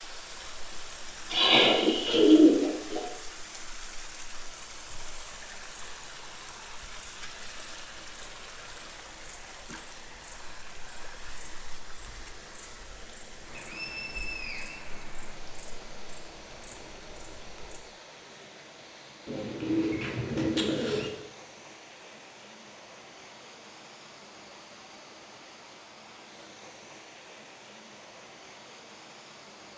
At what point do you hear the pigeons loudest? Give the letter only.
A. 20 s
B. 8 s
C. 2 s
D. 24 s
C.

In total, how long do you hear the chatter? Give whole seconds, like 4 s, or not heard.
not heard.